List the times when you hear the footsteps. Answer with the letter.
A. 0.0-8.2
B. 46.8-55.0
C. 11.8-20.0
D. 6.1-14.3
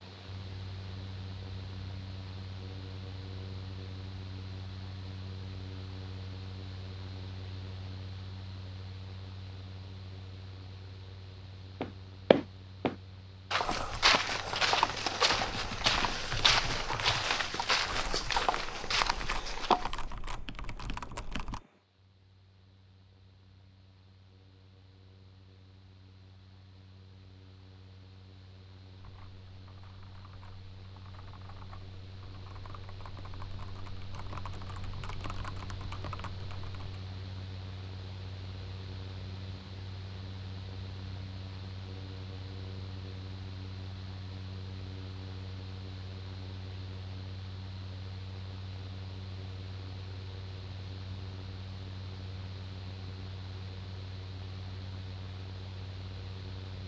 C.